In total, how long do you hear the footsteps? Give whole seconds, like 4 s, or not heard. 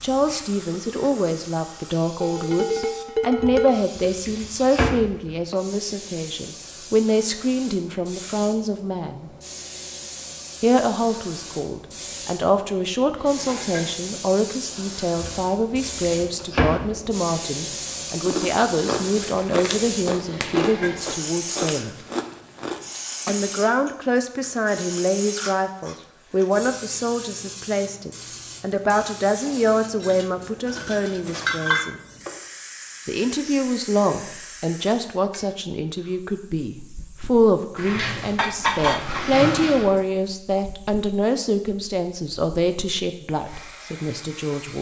not heard.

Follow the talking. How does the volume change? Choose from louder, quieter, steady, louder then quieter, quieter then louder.
steady.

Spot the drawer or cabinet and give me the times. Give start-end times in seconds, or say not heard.
3.4-5.3, 15.2-17.1, 37.8-40.0.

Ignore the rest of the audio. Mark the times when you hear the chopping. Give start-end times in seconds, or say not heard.
not heard.